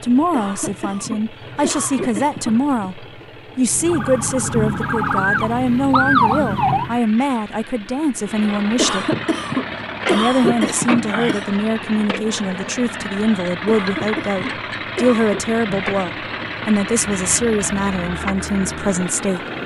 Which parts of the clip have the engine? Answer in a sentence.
The engine can be heard from 0.0 to 19.6 s.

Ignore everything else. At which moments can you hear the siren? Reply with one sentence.
The siren can be heard from 3.7 to 7.0 s and from 16.9 to 19.6 s.